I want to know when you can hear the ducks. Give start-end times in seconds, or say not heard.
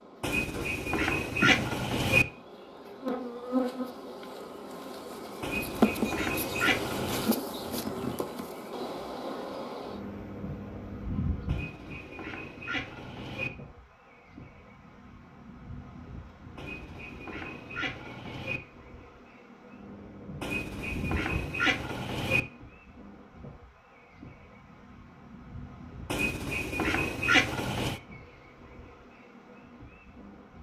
0.2-2.2, 5.4-7.3, 11.4-13.5, 16.6-18.6, 20.4-22.4, 26.1-28.0.